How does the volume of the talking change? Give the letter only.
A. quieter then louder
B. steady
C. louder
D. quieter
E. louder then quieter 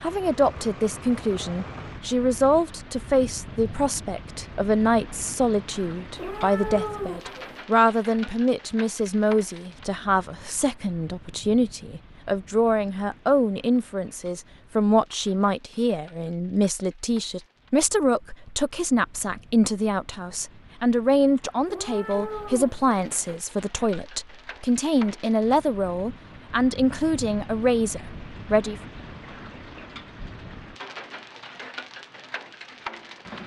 B.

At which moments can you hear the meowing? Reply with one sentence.
You can hear the meowing from 6.2 to 7.7 s and from 21.6 to 23.4 s.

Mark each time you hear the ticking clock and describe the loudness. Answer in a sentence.
You can't hear the ticking clock here.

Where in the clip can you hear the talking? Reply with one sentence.
The talking can be heard from 0.0 to 28.8 s.